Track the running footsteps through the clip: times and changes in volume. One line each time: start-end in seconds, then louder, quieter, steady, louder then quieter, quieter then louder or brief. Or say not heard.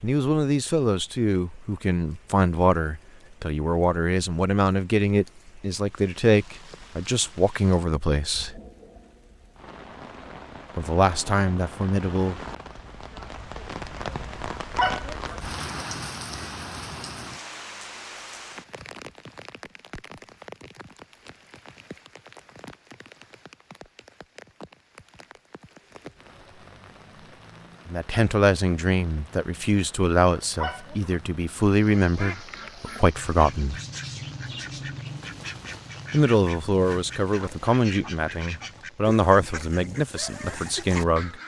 not heard.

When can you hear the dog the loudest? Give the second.
15 s.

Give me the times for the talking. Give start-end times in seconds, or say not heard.
0.0-8.6, 10.8-12.4, 27.9-33.8, 36.1-41.4.